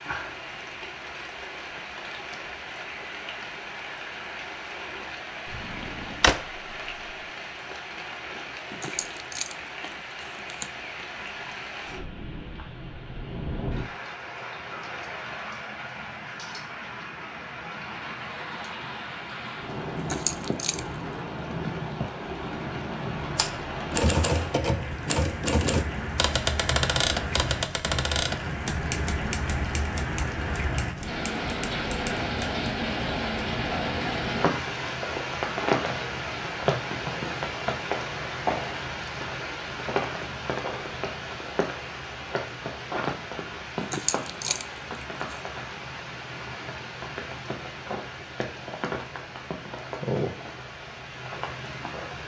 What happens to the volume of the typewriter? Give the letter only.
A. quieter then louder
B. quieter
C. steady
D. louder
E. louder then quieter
B.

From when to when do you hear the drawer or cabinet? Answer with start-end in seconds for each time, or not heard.
5.5-6.6.